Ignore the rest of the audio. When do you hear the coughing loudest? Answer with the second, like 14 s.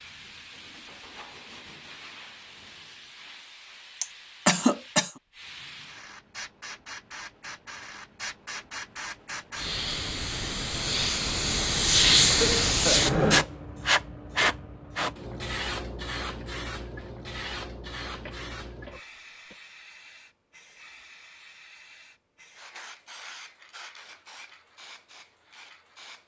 5 s.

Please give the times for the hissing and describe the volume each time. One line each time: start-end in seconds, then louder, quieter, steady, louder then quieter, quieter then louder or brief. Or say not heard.
0.0-26.2 louder then quieter.